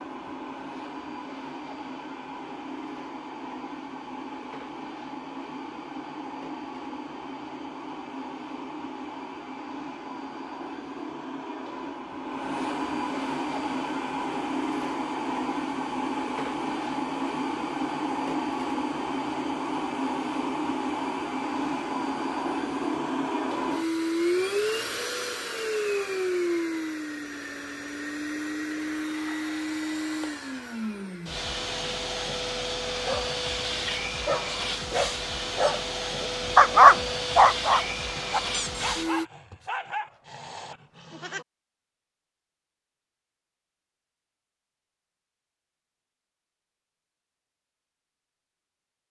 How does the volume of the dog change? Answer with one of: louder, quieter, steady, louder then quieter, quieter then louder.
louder then quieter.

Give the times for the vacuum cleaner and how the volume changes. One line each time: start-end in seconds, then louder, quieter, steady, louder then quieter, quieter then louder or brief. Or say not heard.
0.0-39.2 louder.